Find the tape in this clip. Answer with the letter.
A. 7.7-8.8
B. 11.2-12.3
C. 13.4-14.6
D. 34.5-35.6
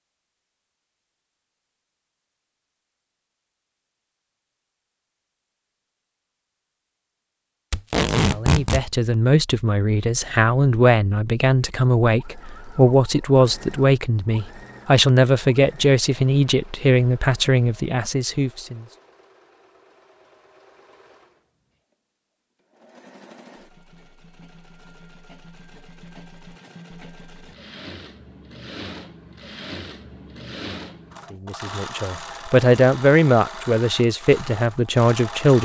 A.